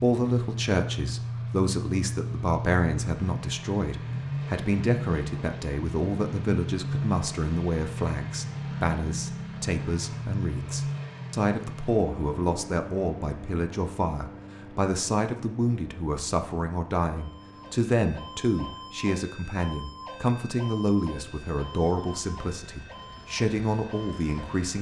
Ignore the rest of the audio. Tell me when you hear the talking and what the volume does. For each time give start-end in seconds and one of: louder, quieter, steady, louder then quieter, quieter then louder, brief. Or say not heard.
0.0-24.7 steady.